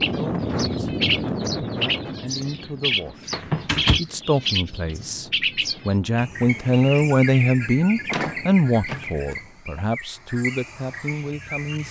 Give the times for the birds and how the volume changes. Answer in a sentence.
The birds can be heard from 0.0 to 11.8 s, getting quieter.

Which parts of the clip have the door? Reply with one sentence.
The door can be heard from 3.3 to 4.0 s and from 8.1 to 9.3 s.